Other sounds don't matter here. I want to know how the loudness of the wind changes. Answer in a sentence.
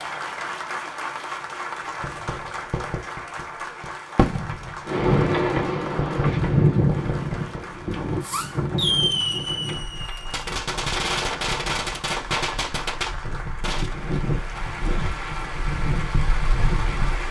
The loudness of the wind goes down, then up.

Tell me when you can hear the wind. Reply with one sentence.
You can hear the wind from 4.8 to 17.2 s.